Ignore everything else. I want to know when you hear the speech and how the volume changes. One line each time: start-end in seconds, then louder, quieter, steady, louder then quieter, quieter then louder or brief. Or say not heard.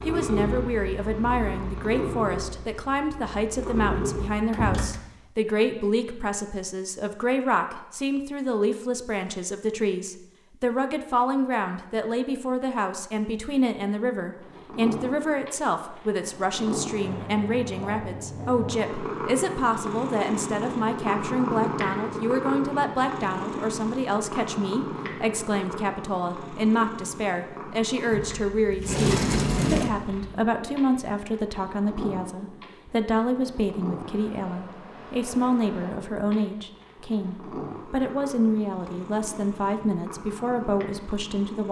0.1-41.6 steady.